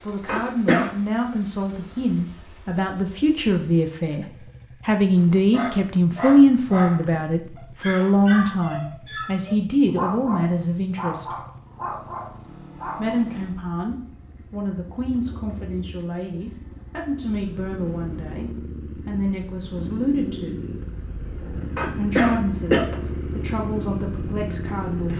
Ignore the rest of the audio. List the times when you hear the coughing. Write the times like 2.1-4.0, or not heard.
0.2-0.9, 21.8-22.9.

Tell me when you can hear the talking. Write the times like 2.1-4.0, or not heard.
0.0-4.2, 4.8-11.3, 12.9-20.6, 21.9-25.1.